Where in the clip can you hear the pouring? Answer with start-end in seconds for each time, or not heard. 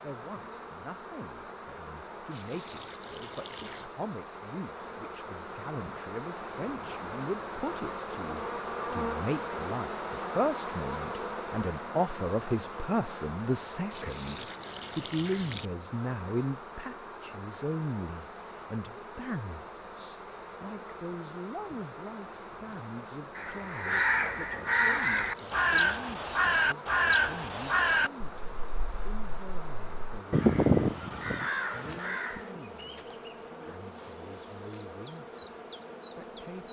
2.3-3.9, 13.9-15.7, 24.6-26.0.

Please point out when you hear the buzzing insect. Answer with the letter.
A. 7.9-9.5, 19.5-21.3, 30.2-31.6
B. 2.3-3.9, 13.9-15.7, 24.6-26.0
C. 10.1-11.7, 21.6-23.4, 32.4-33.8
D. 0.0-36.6
D.